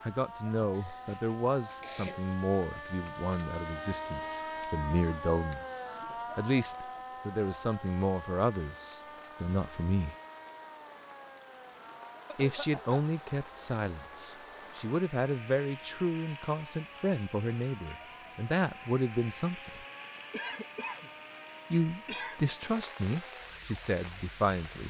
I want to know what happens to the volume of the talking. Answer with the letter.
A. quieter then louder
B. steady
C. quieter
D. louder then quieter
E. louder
B.